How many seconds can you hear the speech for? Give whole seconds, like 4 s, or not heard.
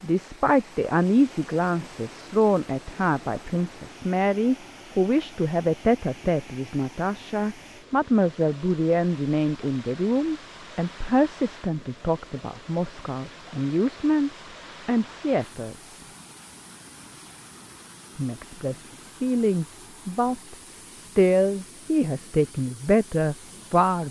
22 s.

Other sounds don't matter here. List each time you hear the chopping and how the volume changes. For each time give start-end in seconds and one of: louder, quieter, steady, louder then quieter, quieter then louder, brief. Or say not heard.
not heard.